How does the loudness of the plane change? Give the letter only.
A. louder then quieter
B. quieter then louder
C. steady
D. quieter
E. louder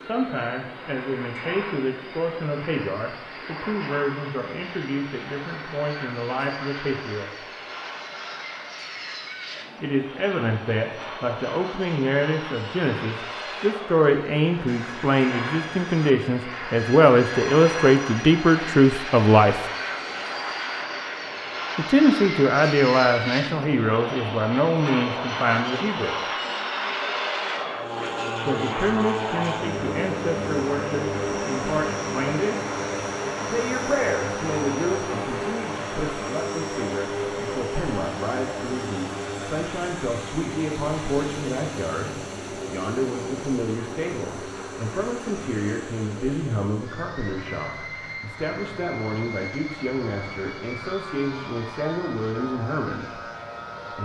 A.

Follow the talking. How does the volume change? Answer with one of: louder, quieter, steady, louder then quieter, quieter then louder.
louder then quieter.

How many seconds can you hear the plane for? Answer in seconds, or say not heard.
54 s.